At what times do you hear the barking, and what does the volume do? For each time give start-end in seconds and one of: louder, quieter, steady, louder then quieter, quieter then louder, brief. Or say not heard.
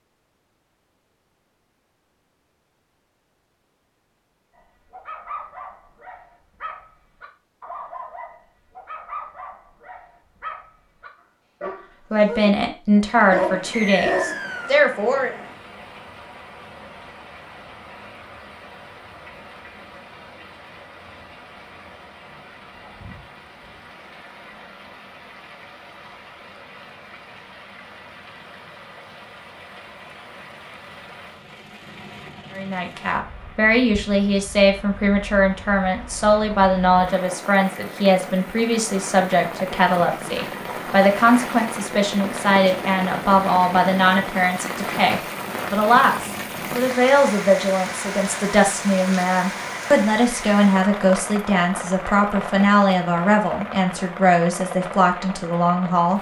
4.5-14.4 louder.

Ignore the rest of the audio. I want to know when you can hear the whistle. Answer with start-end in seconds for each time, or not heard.
13.7-14.8.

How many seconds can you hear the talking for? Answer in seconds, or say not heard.
27 s.